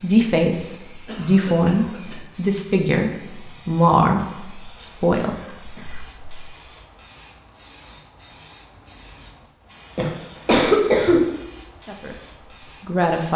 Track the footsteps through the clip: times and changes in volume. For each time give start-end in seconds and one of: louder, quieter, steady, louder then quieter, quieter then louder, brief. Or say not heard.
not heard.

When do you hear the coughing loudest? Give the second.
11 s.